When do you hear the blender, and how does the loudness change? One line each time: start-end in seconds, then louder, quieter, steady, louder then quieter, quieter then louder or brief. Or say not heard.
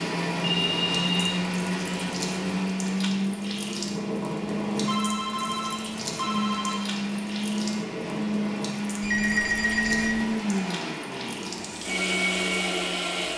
0.0-13.3 steady.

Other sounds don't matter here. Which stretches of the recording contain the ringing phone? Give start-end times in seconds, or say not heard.
0.4-2.6, 4.8-6.8, 9.0-10.2.